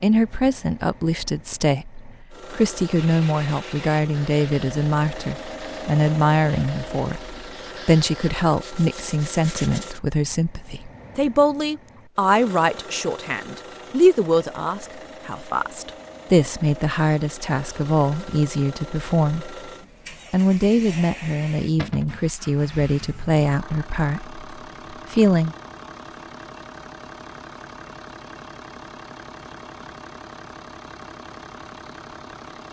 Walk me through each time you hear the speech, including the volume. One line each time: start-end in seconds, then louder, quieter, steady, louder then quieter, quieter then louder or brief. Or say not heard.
0.0-19.6 steady
20.3-25.6 quieter.